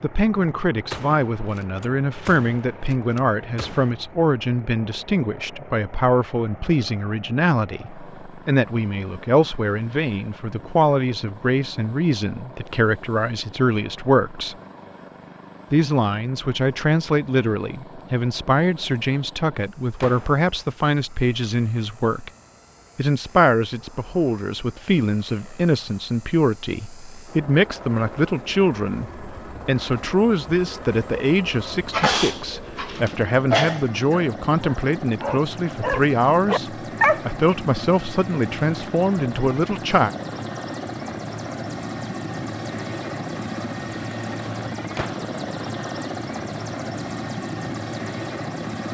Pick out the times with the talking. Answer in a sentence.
The talking can be heard from 0.0 to 14.6 s, from 15.7 to 22.3 s and from 22.9 to 40.1 s.